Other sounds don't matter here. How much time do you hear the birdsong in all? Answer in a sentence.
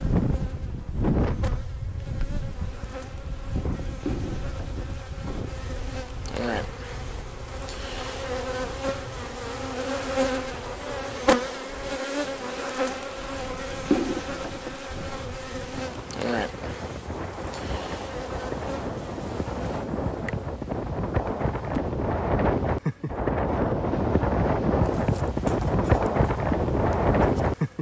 The birdsong can't be heard in this clip.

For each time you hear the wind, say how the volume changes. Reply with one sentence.
The wind can be heard from 0.0 to 27.7 s, getting quieter then louder.